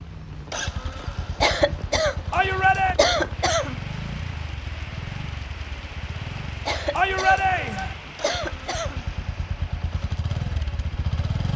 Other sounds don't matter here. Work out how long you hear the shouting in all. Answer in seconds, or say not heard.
2 s.